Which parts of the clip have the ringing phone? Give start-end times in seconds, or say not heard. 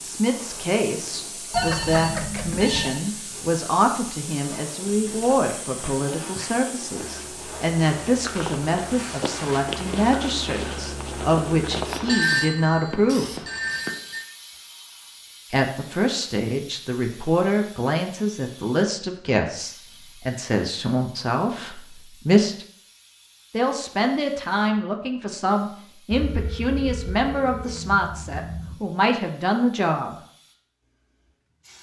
1.5-3.0, 12.1-14.2, 26.1-28.8.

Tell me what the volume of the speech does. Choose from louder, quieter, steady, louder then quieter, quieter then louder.
steady.